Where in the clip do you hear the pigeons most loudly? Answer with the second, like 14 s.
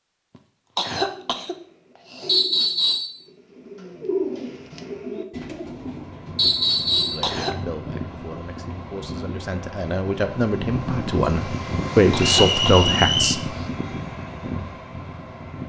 4 s.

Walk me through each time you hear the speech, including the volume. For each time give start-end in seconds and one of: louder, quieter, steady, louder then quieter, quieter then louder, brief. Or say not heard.
7.1-13.5 louder.